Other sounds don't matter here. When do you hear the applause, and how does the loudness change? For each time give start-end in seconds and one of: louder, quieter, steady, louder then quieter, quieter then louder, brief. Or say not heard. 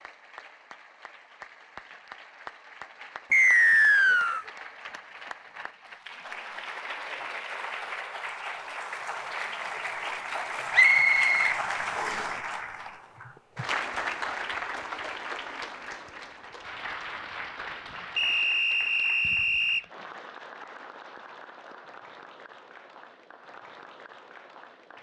0.0-24.9 louder then quieter.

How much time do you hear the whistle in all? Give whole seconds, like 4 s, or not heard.
4 s.